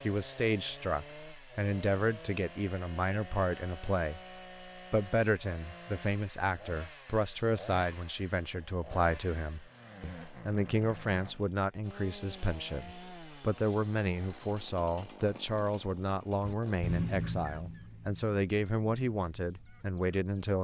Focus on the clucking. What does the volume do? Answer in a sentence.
The loudness of the clucking goes down.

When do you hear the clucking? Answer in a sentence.
The clucking can be heard from 16.4 to 20.6 s.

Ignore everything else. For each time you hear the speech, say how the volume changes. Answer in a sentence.
The speech can be heard from 0.0 to 20.6 s, at a steady volume.